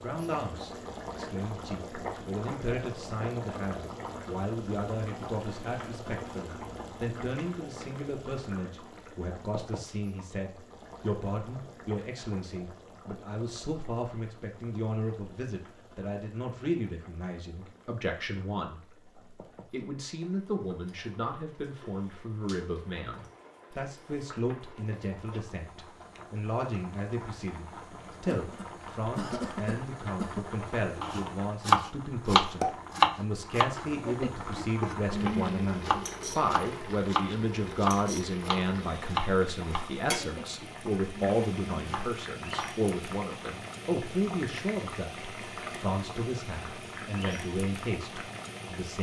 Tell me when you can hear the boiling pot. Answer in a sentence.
The boiling pot can be heard from 0.0 to 48.9 s.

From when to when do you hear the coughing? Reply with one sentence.
You can hear the coughing from 27.9 to 30.4 s.